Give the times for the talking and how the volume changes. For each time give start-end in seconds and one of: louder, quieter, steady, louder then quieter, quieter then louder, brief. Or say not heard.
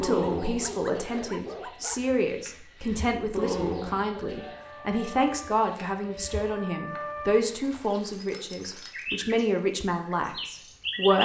0.0-11.2 steady.